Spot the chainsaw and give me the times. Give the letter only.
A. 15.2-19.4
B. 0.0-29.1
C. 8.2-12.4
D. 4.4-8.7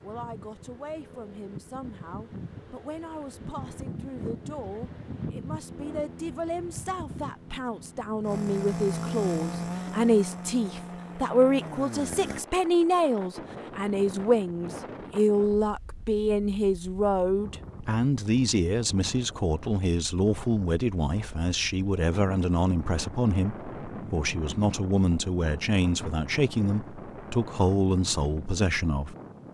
C.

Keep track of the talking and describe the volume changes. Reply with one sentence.
The volume of the talking goes up.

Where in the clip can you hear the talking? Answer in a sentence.
You can hear the talking from 0.0 to 29.1 s.